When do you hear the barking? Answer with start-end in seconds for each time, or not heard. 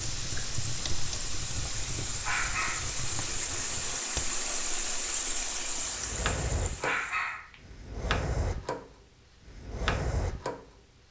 2.2-3.0, 6.8-7.6.